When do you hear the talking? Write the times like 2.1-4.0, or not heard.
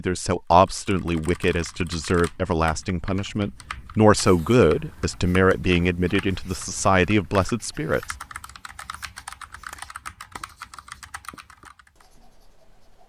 0.0-8.2.